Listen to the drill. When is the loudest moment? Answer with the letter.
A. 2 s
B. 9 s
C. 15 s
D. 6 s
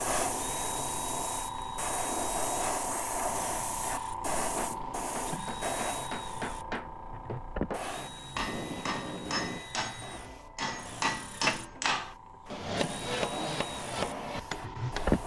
C.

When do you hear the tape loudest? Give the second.
9 s.